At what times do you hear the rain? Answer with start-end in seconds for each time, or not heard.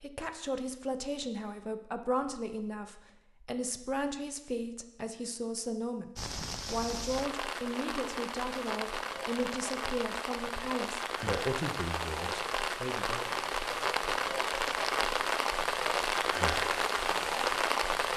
6.2-18.1.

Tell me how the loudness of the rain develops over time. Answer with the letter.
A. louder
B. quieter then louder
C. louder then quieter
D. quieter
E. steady
A.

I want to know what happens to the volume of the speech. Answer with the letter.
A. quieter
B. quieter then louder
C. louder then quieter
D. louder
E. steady
E.